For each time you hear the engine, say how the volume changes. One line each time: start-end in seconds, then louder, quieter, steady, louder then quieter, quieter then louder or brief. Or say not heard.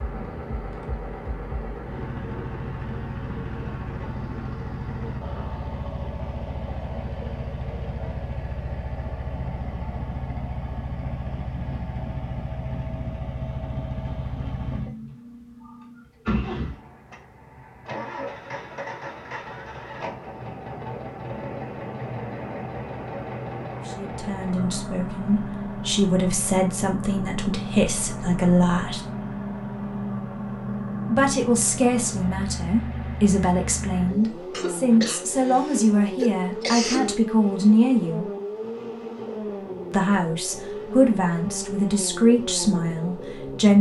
0.0-43.7 steady.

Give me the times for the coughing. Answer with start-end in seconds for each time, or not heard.
34.5-37.2.